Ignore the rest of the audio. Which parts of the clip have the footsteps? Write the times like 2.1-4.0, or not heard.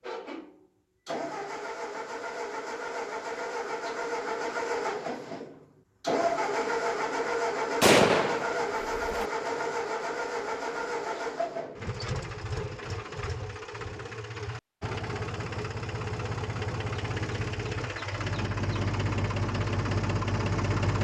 not heard.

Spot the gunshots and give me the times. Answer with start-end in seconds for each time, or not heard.
7.8-9.2.